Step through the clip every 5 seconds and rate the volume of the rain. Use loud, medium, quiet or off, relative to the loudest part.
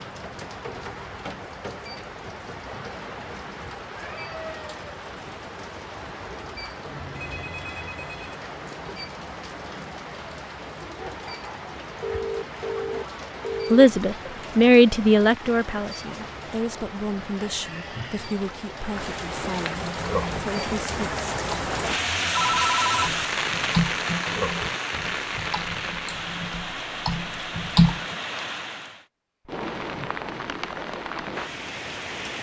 medium, medium, medium, medium, loud, medium, medium.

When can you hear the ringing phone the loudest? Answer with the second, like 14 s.
23 s.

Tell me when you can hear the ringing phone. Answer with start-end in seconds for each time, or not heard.
7.2-8.4, 12.0-13.8, 22.4-23.8.